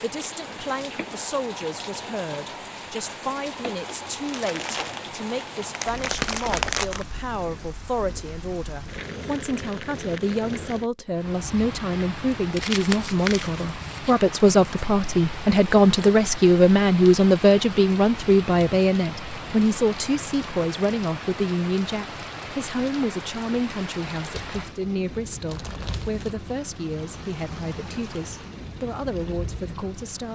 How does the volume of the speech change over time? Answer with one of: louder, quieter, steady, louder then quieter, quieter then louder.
louder then quieter.